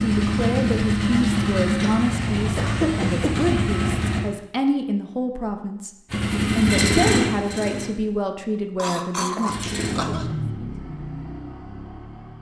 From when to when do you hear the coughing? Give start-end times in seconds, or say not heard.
1.8-3.4, 8.8-10.2.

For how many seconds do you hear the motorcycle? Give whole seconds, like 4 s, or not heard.
9 s.